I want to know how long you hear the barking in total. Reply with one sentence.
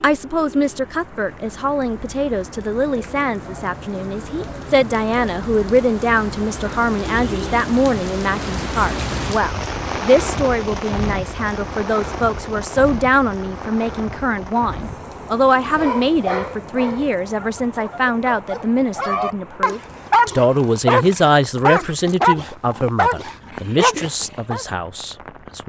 You can hear the barking for 9 seconds altogether.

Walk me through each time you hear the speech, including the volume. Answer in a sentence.
The speech can be heard from 0.0 to 25.6 s, at a steady volume.